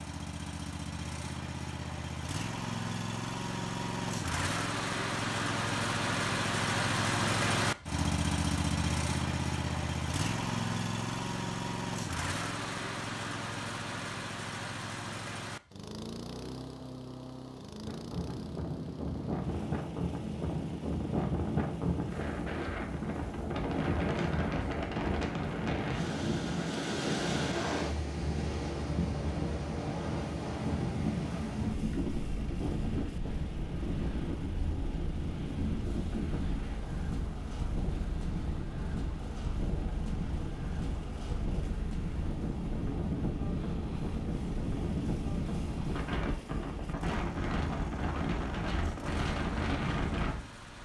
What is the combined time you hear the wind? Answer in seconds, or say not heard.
33 s.